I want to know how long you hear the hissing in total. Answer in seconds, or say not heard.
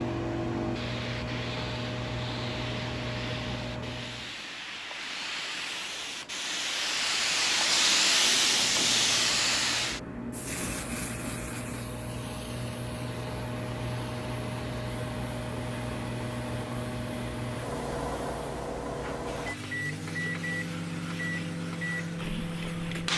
23 s.